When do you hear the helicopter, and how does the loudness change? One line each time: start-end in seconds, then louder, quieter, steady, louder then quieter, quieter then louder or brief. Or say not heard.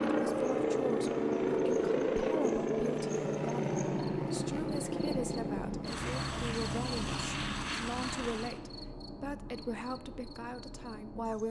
0.0-8.6 quieter.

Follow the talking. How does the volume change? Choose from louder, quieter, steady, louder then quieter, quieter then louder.
steady.